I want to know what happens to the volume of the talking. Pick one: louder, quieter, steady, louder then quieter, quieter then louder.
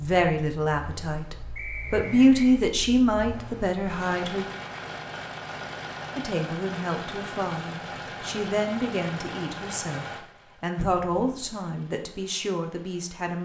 quieter.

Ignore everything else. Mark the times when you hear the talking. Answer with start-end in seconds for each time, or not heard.
0.0-4.5, 6.2-13.4.